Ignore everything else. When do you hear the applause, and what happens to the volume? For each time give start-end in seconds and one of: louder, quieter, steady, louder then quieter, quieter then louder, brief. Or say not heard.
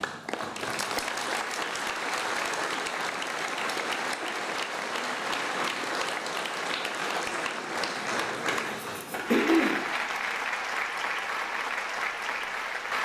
0.0-12.9 steady.